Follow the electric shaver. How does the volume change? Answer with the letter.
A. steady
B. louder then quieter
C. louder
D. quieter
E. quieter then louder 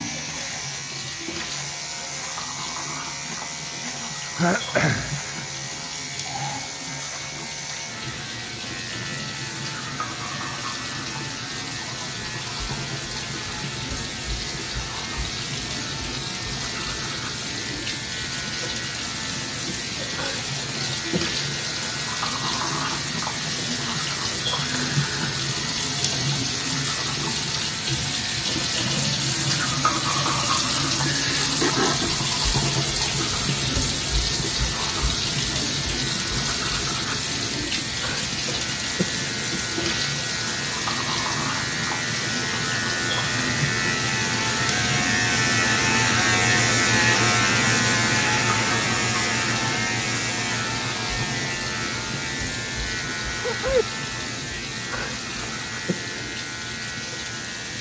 C.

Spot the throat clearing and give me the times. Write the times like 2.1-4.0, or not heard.
4.3-5.2, 31.1-32.1, 53.4-53.9.